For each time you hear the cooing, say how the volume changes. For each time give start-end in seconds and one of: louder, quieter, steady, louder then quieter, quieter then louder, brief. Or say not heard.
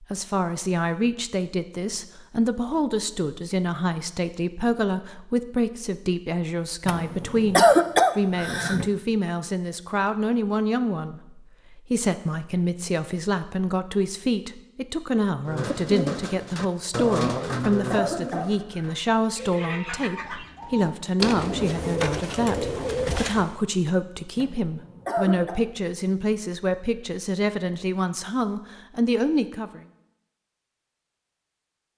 15.4-23.6 quieter then louder.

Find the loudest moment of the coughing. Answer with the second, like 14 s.
8 s.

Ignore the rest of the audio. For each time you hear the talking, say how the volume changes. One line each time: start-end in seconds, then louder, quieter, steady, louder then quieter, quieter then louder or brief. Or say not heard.
0.0-29.9 steady.